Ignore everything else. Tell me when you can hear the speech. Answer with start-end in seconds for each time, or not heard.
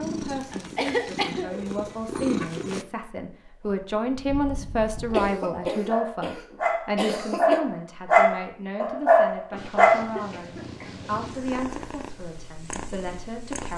0.0-13.7.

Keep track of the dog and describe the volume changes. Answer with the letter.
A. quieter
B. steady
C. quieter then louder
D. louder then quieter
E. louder
E.